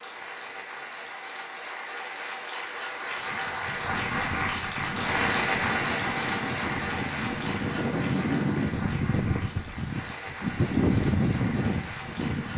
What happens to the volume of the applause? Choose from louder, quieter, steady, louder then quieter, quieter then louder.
louder then quieter.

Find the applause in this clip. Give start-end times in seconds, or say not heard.
0.0-12.5.